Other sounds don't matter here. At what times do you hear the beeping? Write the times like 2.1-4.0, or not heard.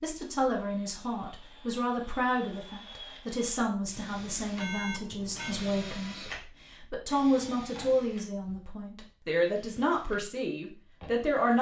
4.5-5.5.